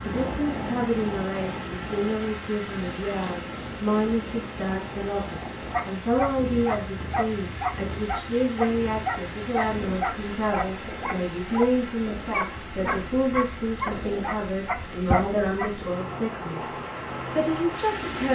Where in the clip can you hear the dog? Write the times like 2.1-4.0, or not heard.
5.7-15.8.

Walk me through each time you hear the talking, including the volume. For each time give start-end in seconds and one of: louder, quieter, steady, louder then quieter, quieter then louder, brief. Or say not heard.
0.0-16.6 steady
17.3-18.2 brief.